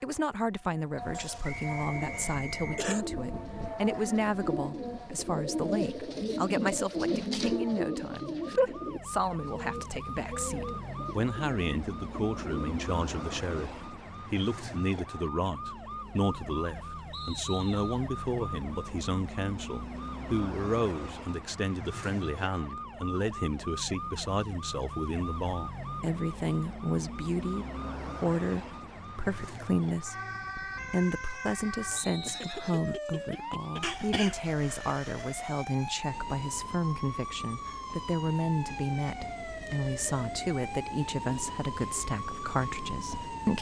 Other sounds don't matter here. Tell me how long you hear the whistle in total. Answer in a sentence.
You can hear the whistle for 3 seconds altogether.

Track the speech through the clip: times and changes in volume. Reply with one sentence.
The speech can be heard from 0.0 to 30.1 s, at a steady volume; and from 30.9 to 43.5 s, at a steady volume.